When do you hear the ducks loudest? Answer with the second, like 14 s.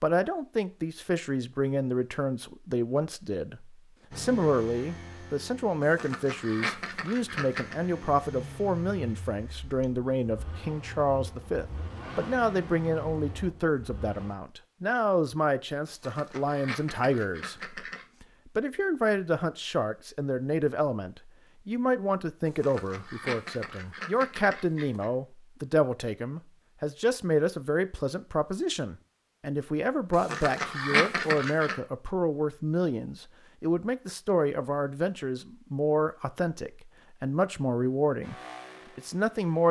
31 s.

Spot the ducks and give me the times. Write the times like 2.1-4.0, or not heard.
5.8-7.8, 15.8-18.1, 22.4-25.1, 30.1-31.8.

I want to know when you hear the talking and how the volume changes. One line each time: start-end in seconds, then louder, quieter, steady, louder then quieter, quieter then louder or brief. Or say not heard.
0.0-38.4 steady
39.0-39.6 brief.